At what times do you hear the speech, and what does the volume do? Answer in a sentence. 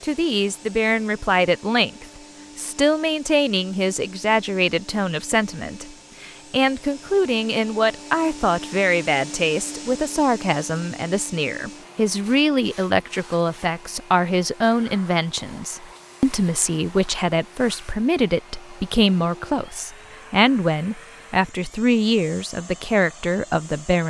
The speech can be heard from 0.0 to 24.0 s, at a steady volume.